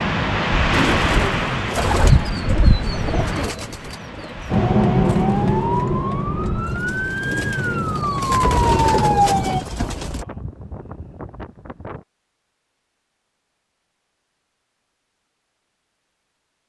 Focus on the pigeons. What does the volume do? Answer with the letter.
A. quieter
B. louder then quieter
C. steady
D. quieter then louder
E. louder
D.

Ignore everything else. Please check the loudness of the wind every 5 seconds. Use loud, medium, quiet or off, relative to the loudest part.
loud, quiet, quiet, off.